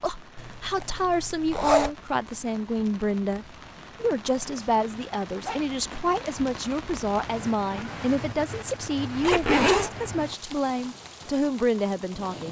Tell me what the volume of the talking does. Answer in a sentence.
The loudness of the talking stays about the same.